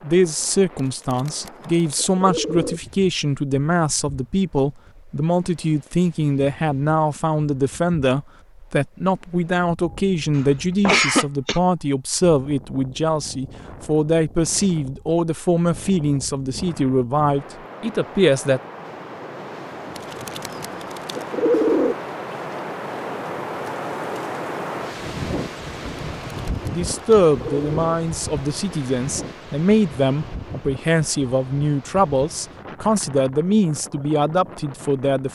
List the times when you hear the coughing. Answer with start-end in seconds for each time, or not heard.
10.3-11.6.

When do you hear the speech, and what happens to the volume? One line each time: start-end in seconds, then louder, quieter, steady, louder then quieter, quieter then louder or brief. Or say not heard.
0.0-18.6 steady
26.7-35.2 steady.